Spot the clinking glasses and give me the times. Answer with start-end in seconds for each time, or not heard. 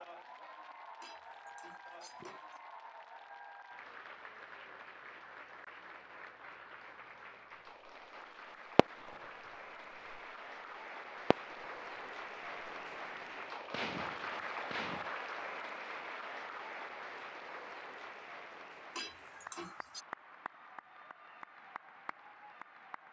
1.0-2.6, 18.9-20.1.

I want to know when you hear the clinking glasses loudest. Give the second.
19 s.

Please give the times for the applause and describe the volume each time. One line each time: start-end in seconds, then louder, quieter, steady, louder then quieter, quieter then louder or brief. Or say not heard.
0.0-23.0 louder then quieter.